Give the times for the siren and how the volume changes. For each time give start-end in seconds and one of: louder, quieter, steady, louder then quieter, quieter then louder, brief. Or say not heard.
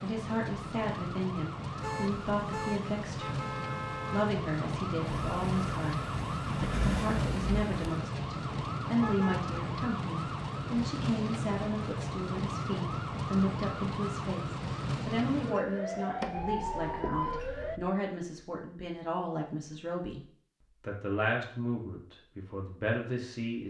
0.0-17.8 steady.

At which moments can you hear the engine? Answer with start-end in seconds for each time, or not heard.
5.0-8.0.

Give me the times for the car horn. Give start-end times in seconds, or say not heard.
1.8-4.3, 9.0-9.5, 16.4-17.9.